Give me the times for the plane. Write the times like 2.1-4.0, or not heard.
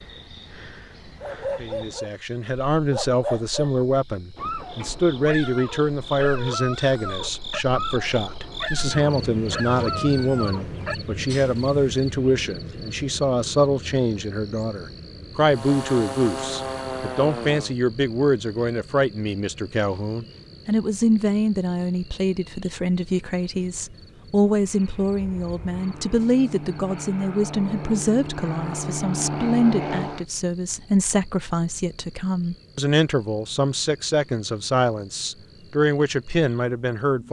15.5-17.8, 24.6-30.2.